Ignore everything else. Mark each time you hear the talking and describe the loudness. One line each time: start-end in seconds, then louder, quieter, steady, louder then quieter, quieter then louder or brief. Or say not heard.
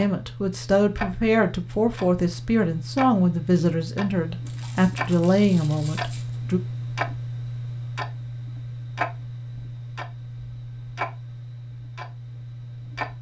0.0-6.6 steady.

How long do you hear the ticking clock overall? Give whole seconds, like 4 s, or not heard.
13 s.